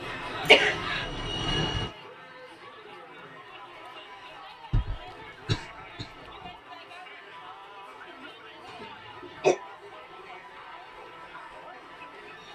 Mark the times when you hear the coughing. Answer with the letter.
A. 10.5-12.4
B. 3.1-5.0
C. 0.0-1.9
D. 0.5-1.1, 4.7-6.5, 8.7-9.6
D.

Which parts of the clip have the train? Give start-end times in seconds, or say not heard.
0.0-1.9.